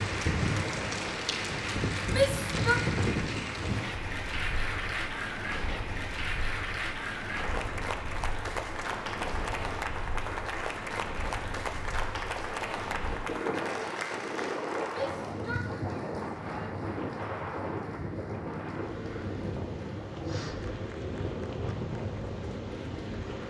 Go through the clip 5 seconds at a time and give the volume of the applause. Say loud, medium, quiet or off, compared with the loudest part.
loud, loud, loud, quiet, quiet.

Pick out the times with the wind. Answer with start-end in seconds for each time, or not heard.
0.0-23.4.